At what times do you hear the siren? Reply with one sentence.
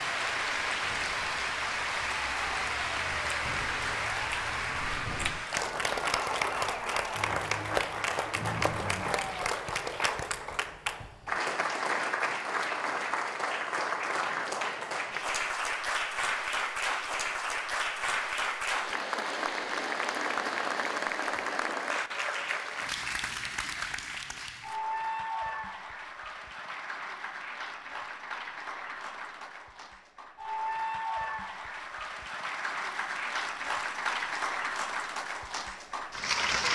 You can hear the siren from 0.1 to 9.6 s.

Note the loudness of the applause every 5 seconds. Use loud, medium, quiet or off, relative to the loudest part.
loud, loud, loud, loud, loud, medium, loud, loud.